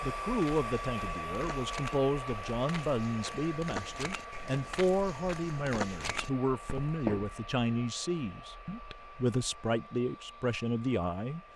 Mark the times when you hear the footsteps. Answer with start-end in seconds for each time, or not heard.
0.2-7.3.